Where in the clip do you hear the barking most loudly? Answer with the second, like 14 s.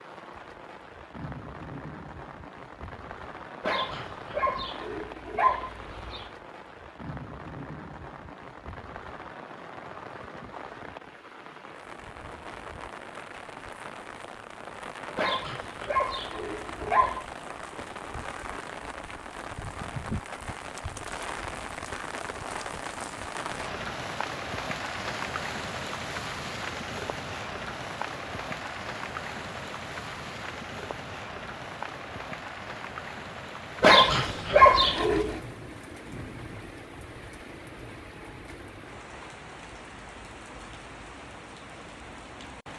35 s.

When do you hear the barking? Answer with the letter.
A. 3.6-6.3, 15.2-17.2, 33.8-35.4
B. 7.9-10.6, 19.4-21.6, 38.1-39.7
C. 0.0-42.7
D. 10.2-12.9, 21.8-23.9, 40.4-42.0
A.